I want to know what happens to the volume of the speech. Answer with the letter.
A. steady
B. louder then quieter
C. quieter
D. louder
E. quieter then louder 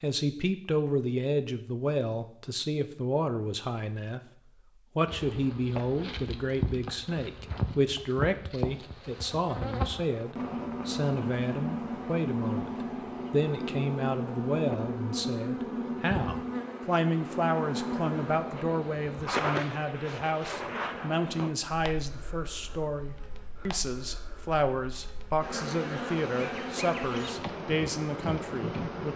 A.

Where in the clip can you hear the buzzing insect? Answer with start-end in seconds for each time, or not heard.
5.0-29.1.